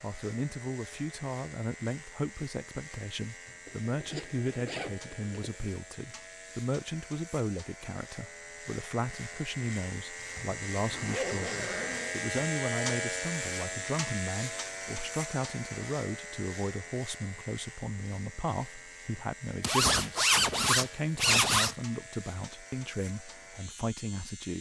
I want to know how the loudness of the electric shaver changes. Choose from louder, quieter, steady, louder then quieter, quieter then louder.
louder then quieter.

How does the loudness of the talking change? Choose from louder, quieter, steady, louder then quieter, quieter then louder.
steady.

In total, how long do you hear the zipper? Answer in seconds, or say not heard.
6 s.